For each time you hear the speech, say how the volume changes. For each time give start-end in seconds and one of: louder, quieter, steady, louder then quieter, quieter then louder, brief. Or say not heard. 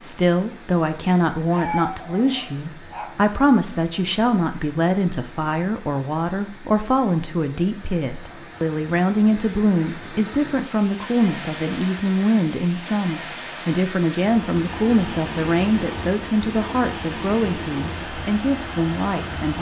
0.0-19.5 steady.